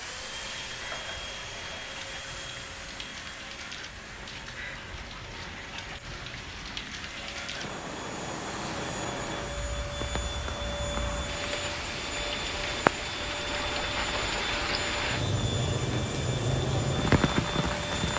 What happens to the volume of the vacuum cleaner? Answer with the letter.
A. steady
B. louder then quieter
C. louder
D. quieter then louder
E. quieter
D.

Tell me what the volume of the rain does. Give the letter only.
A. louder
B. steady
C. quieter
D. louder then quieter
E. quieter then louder
A.